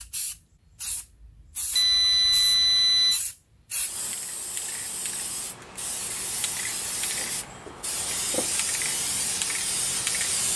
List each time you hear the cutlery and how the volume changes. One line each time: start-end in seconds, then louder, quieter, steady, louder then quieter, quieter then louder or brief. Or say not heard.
not heard.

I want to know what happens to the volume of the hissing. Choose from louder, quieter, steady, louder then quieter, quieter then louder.
louder.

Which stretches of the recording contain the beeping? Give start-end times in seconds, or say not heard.
1.7-3.2.